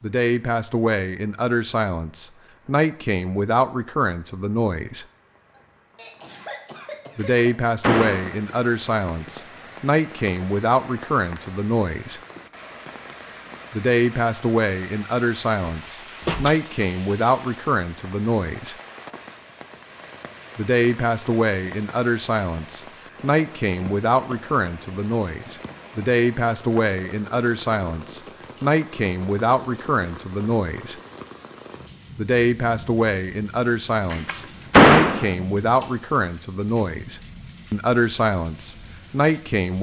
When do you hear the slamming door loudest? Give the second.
35 s.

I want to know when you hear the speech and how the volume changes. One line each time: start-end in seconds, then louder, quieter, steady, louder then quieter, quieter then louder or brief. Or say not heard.
0.0-5.0 steady
7.2-12.2 steady
13.7-18.8 steady
20.6-30.9 steady
32.1-39.7 steady.